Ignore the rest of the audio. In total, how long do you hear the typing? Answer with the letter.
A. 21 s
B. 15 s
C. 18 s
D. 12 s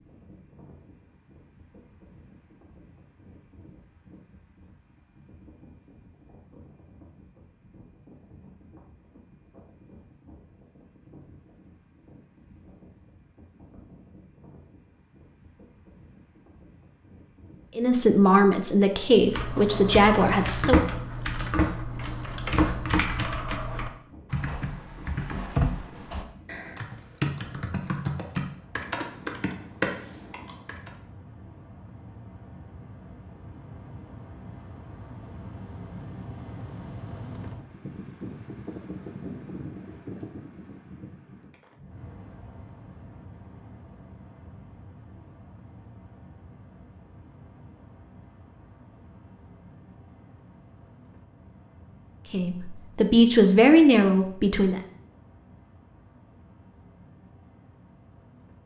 D.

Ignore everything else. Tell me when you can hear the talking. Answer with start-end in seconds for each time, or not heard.
17.8-20.9, 52.3-54.8.